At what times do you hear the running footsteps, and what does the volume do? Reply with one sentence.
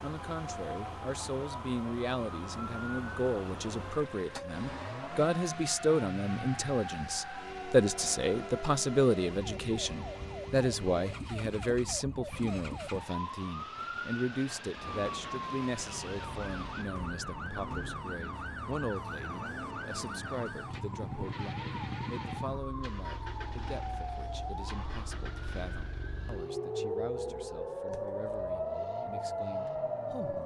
You can't hear the running footsteps here.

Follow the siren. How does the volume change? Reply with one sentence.
The loudness of the siren goes up.